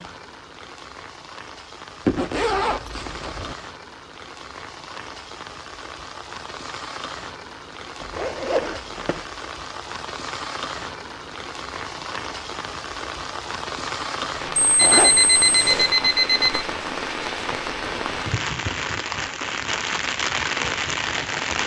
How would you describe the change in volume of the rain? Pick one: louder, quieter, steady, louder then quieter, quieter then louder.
louder.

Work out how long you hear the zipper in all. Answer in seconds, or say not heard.
4 s.